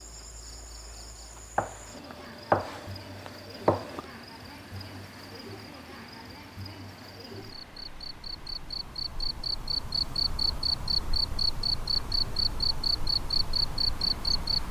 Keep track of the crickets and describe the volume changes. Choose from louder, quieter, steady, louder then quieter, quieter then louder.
louder.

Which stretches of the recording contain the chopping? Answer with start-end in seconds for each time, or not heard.
1.6-4.0.